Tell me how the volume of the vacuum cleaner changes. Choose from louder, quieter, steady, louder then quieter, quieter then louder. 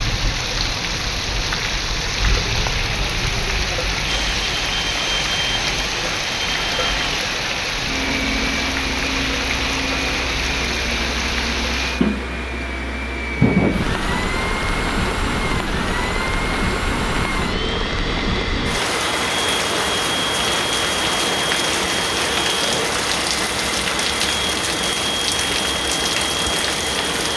steady.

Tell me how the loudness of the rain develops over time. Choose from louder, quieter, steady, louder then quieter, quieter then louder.
steady.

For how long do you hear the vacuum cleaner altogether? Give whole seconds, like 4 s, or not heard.
23 s.